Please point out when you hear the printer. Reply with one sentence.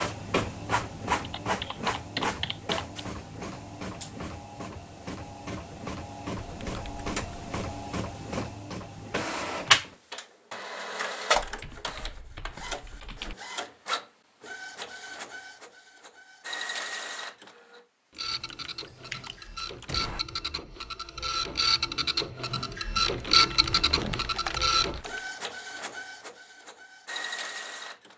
You can hear the printer from 0.0 to 28.1 s.